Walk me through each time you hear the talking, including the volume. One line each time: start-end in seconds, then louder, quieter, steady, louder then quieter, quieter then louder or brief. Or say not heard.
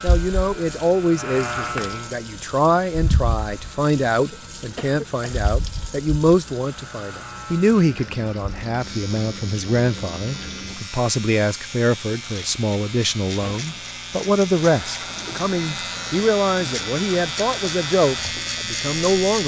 0.0-19.4 steady.